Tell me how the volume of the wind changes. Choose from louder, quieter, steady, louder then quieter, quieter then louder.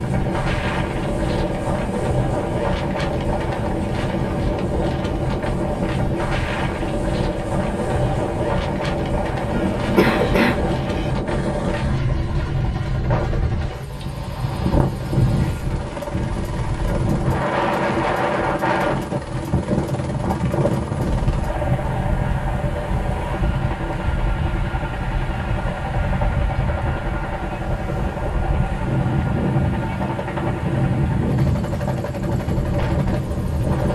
steady.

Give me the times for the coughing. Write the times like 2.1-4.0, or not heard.
9.5-10.6.